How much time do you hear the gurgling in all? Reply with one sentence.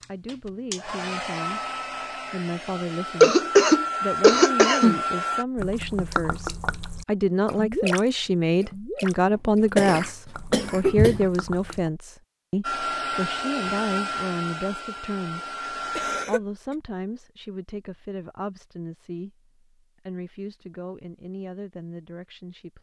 You can hear the gurgling for 6 seconds altogether.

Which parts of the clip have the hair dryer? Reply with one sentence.
You can hear the hair dryer from 0.0 to 5.5 s and from 12.6 to 16.2 s.